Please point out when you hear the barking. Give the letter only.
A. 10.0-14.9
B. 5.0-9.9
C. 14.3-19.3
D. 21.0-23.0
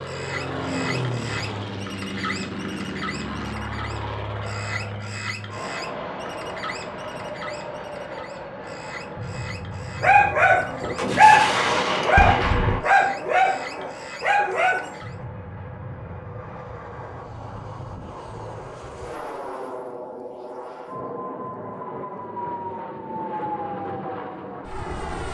A.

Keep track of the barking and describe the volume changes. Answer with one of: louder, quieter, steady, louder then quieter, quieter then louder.
quieter.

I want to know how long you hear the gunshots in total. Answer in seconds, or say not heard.
2 s.